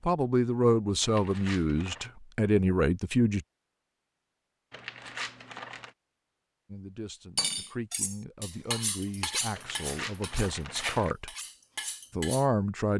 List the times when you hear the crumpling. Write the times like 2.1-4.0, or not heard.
1.0-2.1, 4.7-5.9, 9.6-11.2.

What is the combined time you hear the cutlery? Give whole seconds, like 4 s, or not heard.
5 s.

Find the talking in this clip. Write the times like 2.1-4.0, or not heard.
0.0-3.5, 6.7-11.3, 12.1-12.9.